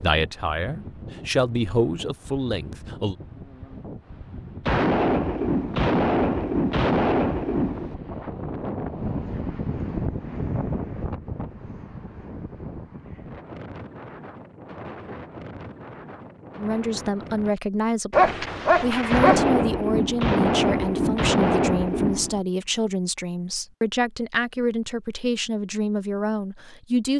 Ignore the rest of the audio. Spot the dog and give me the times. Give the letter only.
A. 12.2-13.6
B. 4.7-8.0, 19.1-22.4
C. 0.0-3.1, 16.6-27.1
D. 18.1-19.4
D.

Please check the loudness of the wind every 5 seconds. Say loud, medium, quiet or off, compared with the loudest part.
medium, loud, loud, medium, off, off.